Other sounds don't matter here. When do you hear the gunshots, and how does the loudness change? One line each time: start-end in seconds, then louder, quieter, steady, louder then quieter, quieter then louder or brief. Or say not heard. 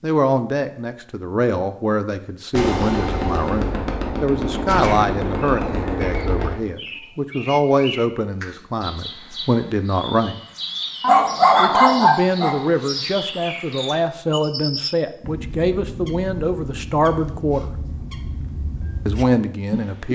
2.5-6.5 steady.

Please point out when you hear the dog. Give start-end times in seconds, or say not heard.
11.0-12.6.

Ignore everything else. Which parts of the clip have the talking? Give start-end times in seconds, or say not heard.
0.0-10.4, 11.6-17.7, 19.1-20.1.